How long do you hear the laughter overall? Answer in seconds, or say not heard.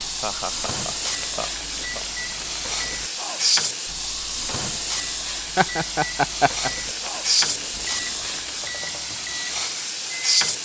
3 s.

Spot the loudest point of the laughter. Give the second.
6 s.